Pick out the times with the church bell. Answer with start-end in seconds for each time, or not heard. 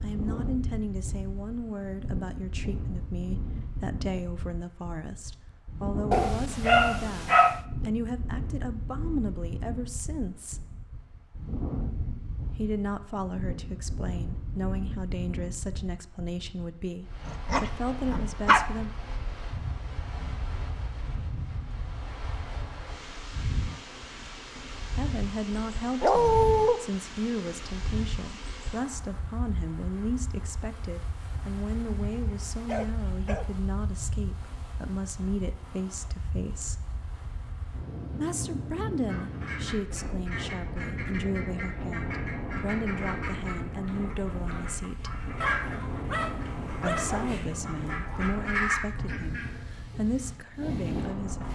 not heard.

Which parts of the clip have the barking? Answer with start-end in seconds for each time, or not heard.
6.1-7.6, 17.2-18.6, 26.0-26.8, 31.4-33.6, 45.4-48.3.